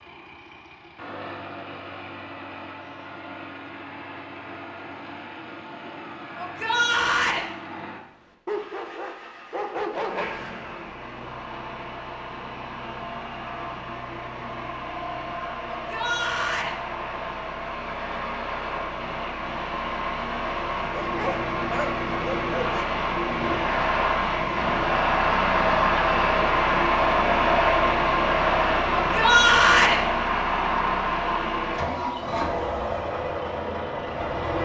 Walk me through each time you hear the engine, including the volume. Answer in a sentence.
You can hear the engine from 0.0 to 34.6 s, getting louder.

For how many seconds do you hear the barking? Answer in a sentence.
The barking can be heard for 4 seconds in total.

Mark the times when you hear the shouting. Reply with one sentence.
The shouting can be heard from 6.3 to 7.5 s, from 15.7 to 16.8 s and from 28.9 to 30.0 s.